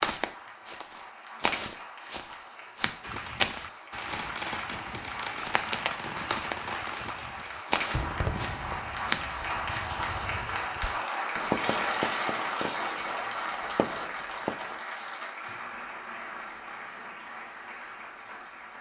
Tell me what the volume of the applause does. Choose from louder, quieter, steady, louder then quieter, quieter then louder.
louder then quieter.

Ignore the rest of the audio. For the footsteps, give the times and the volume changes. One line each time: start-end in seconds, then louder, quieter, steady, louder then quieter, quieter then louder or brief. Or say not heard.
0.0-9.3 quieter then louder.